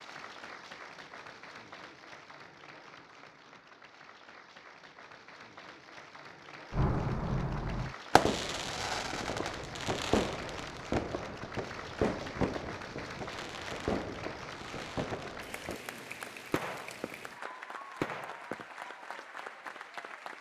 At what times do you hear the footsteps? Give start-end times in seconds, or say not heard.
not heard.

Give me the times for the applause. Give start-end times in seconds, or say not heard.
0.0-20.3.